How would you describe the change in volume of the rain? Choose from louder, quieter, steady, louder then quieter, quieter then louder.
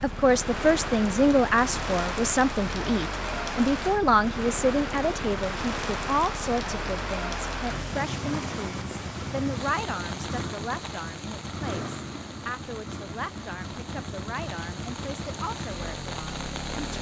quieter.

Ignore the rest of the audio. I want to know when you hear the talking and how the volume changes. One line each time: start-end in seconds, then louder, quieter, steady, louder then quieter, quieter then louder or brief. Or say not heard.
0.0-16.9 quieter.